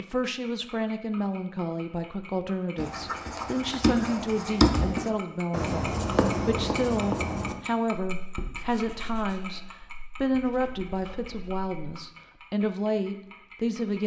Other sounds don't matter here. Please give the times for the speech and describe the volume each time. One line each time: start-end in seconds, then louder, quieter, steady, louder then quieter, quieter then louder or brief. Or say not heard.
0.0-14.0 steady.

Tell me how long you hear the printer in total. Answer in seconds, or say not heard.
not heard.